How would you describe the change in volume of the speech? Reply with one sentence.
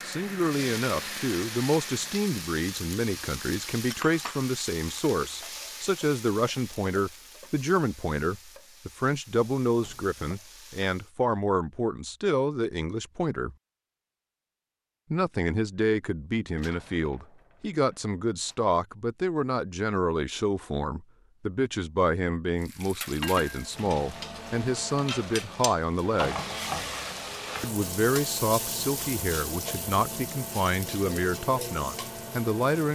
The volume of the speech stays about the same.